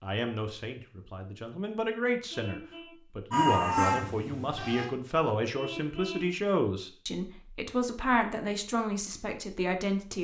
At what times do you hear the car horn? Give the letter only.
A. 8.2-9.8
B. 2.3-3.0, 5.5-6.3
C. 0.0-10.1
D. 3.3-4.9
B.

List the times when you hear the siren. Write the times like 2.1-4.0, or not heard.
3.3-4.9.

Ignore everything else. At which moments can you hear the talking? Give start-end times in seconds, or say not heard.
0.0-10.1.